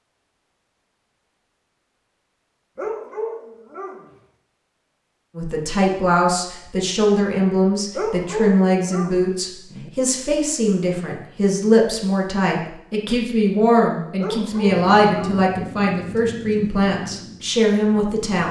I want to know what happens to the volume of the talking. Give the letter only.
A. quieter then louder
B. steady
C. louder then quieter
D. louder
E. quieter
B.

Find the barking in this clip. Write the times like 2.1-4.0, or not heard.
2.8-4.2, 8.0-9.9, 14.2-15.4.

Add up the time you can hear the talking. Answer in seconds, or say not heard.
13 s.